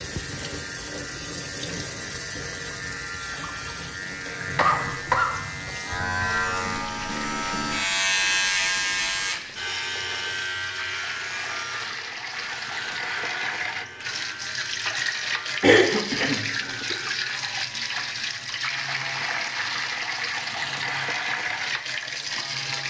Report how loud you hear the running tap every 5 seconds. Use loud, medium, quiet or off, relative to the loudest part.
medium, medium, loud, loud, loud.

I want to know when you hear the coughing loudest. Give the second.
16 s.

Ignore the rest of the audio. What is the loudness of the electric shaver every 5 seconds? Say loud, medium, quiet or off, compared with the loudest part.
medium, loud, medium, quiet, quiet.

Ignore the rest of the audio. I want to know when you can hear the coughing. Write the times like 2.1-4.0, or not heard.
4.5-5.3, 15.6-16.9.